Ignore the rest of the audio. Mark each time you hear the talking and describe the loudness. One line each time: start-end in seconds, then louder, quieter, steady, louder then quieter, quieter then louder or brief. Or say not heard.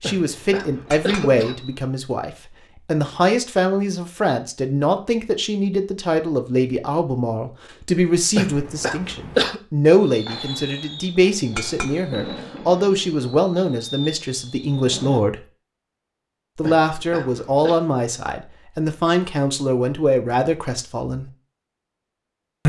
0.0-15.4 steady
16.6-21.3 steady.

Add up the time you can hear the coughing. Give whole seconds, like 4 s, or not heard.
4 s.